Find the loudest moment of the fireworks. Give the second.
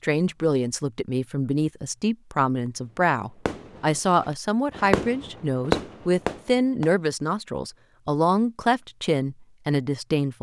6 s.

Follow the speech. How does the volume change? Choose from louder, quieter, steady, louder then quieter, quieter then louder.
steady.